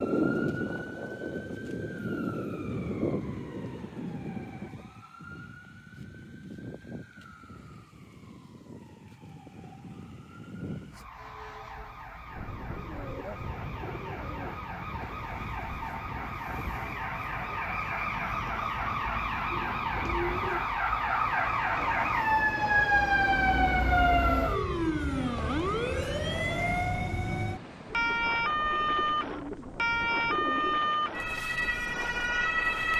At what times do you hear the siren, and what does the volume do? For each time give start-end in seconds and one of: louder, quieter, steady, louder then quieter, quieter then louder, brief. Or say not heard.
0.0-32.9 quieter then louder.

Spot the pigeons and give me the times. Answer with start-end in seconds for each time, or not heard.
2.7-4.7, 12.8-14.6, 19.5-20.7, 27.9-30.9.